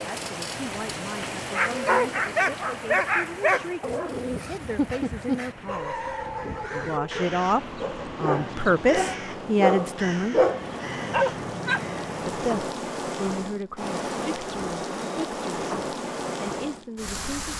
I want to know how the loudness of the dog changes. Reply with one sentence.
The loudness of the dog goes down, then up.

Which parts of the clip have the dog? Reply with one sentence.
You can hear the dog from 1.5 to 11.8 s.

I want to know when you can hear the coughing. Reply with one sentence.
The coughing can't be heard in this clip.